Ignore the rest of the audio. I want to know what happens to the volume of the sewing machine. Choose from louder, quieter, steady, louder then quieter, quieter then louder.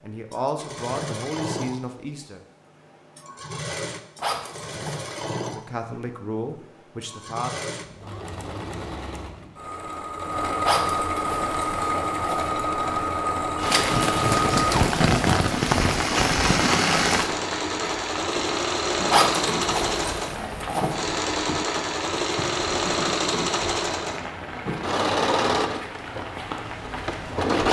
louder.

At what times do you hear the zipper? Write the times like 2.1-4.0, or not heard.
4.2-5.2, 10.6-12.5, 19.1-20.9.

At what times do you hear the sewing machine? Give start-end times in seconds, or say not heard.
0.0-27.6.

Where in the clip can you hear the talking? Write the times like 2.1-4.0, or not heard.
0.0-2.4, 5.4-7.6.